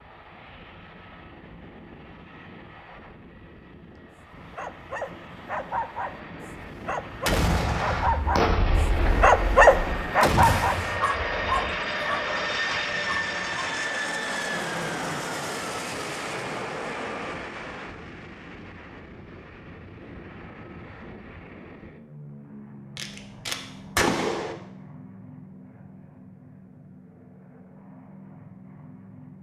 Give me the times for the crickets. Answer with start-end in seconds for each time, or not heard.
not heard.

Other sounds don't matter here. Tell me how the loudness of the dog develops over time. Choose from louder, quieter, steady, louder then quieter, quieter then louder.
louder then quieter.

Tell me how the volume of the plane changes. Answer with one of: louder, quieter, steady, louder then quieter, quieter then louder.
louder then quieter.